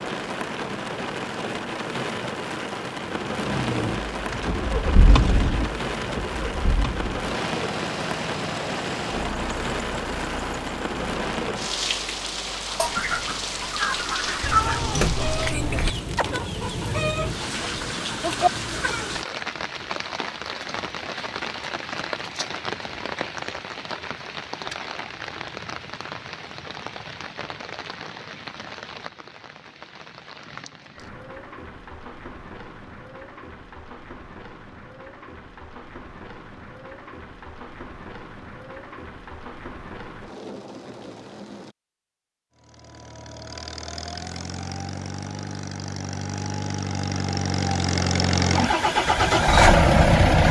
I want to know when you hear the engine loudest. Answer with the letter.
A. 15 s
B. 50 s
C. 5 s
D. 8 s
B.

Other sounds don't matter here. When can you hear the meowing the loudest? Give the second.
15 s.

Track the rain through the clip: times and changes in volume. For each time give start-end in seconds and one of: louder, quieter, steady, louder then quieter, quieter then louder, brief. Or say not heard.
0.0-41.8 quieter.